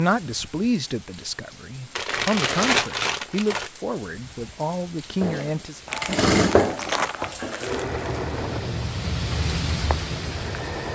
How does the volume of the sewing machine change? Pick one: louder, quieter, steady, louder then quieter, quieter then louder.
quieter.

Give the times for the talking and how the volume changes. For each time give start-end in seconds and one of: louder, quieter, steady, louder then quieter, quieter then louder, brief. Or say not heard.
0.0-5.8 steady.